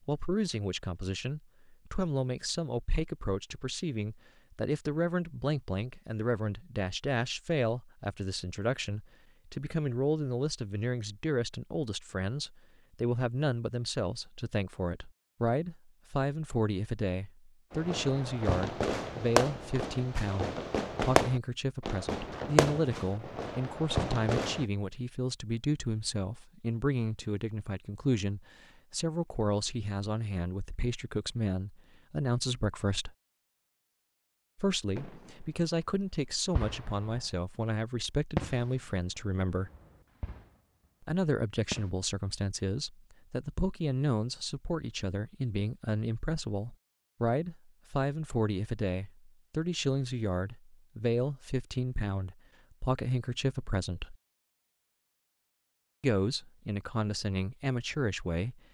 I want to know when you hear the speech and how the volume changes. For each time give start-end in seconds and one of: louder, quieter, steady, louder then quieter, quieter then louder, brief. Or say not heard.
0.1-33.1 steady
34.5-39.7 steady
41.0-54.1 steady
56.0-58.6 brief.